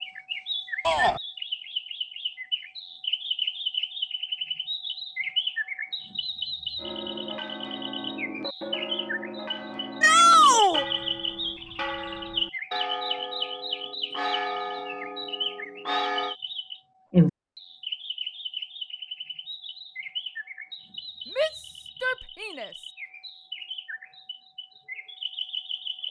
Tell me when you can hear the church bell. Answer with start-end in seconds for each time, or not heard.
6.8-16.4.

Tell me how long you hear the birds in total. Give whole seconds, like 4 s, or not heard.
26 s.